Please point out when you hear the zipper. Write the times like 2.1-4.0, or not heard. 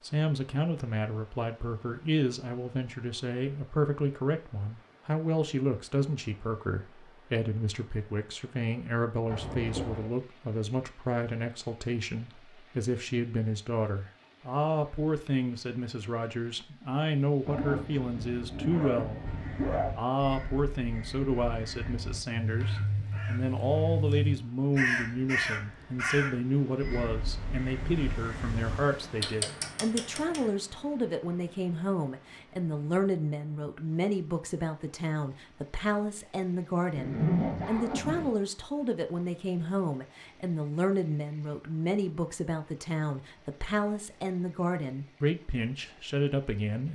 9.2-10.1, 17.4-19.9, 37.0-38.4.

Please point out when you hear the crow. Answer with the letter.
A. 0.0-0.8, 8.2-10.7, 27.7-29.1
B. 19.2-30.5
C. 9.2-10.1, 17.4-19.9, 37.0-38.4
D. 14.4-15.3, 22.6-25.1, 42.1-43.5
B.